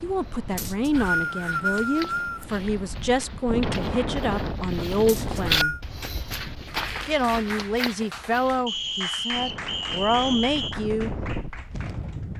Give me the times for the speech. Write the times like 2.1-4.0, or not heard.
0.0-5.8, 7.0-11.2.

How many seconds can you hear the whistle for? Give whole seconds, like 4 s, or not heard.
5 s.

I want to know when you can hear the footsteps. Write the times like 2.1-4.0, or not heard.
0.1-8.7.